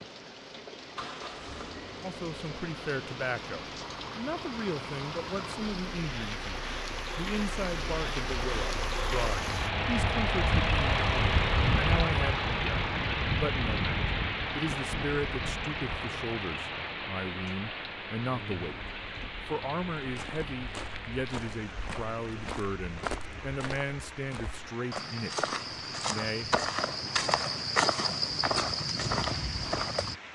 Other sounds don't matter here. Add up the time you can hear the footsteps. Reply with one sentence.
You can hear the footsteps for 10 seconds altogether.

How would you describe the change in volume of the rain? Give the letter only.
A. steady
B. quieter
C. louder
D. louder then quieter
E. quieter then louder
D.